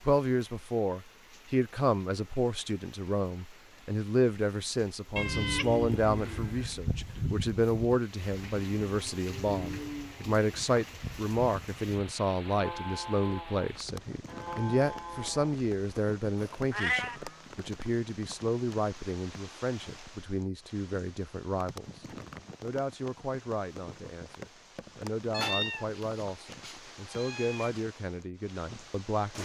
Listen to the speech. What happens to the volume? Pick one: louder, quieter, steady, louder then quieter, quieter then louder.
quieter.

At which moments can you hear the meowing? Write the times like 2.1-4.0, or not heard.
5.2-6.7, 16.7-17.2, 25.3-27.8.